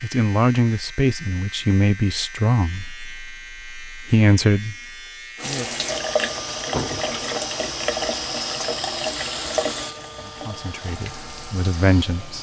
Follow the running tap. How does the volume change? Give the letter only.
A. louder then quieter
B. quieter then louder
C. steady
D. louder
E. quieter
E.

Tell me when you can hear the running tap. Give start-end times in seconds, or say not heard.
5.3-12.3.